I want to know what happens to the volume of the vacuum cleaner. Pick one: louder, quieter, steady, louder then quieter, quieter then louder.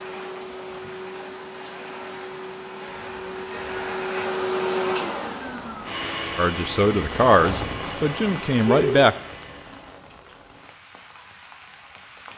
louder then quieter.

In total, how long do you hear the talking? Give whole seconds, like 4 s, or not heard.
3 s.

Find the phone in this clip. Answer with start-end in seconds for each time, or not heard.
8.7-9.1.